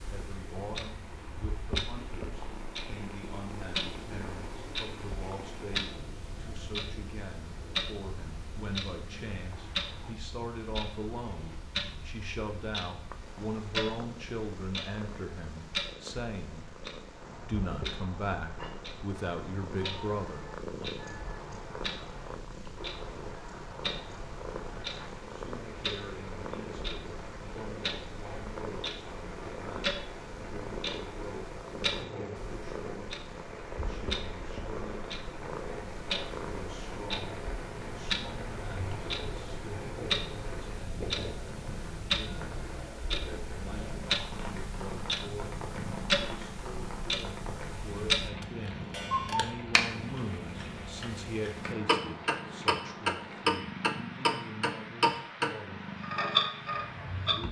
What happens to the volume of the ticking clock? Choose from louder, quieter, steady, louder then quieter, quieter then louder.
louder.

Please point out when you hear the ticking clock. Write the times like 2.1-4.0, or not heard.
0.0-57.4.